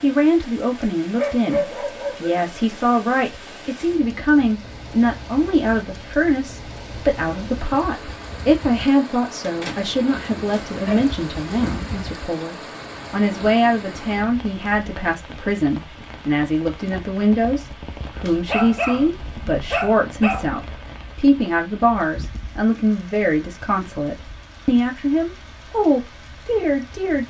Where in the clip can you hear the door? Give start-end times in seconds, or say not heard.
9.4-10.4.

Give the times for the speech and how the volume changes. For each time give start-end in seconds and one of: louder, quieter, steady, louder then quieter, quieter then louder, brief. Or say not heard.
0.0-27.2 steady.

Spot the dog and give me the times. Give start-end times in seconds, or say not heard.
1.1-2.5, 10.4-11.8, 18.4-20.5.